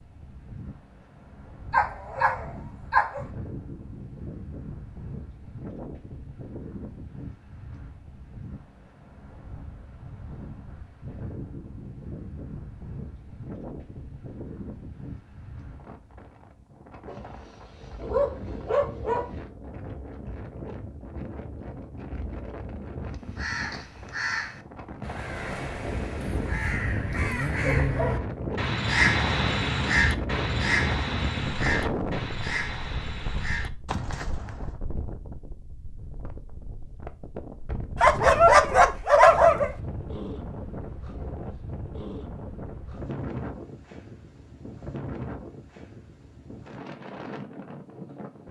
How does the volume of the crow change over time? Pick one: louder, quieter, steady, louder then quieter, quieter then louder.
louder then quieter.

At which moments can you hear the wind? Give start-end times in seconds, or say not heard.
0.0-48.4.